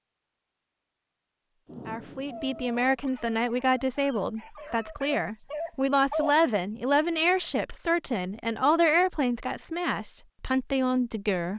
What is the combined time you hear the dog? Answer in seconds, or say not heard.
4 s.